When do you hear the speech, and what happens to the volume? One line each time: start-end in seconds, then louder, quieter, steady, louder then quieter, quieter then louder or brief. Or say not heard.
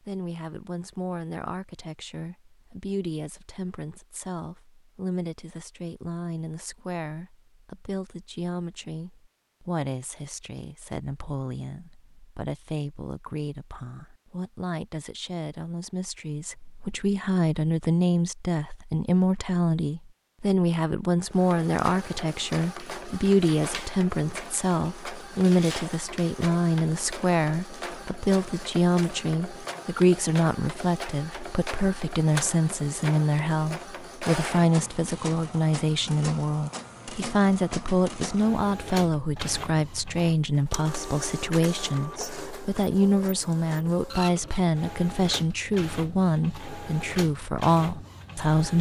0.0-48.7 louder.